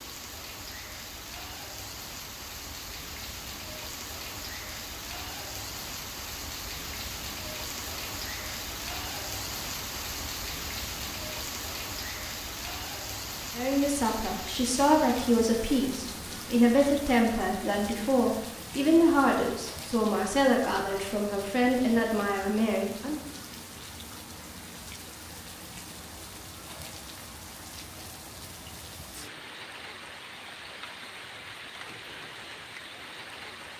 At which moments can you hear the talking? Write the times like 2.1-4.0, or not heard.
13.6-23.2.